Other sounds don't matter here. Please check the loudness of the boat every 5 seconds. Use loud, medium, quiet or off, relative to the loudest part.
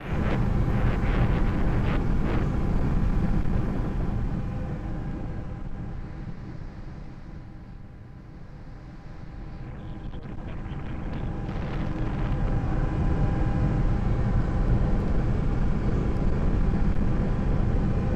loud, quiet, loud, loud.